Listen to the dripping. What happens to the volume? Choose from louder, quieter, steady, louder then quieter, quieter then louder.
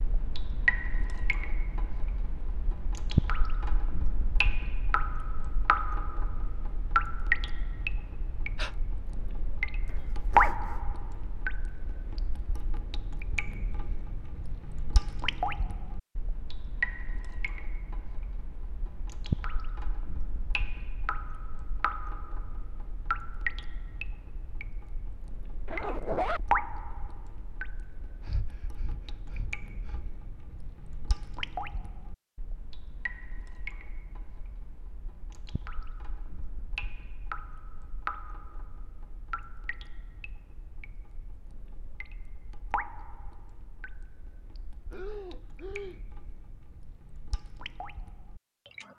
quieter.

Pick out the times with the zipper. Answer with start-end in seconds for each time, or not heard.
9.8-10.8, 25.6-26.4.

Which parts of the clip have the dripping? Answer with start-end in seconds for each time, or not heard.
0.0-48.9.